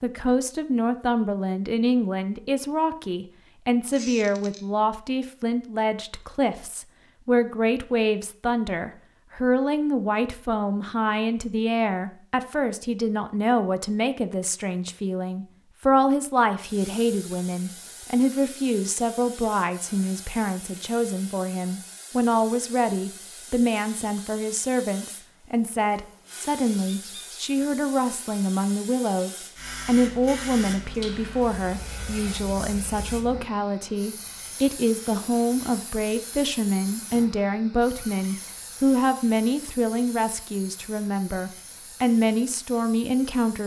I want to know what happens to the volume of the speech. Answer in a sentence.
The volume of the speech stays about the same.